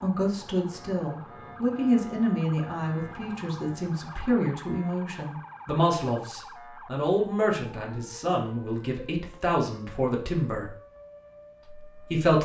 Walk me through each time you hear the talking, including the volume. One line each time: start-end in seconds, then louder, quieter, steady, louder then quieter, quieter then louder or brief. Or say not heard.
0.0-10.8 steady
11.9-12.4 brief.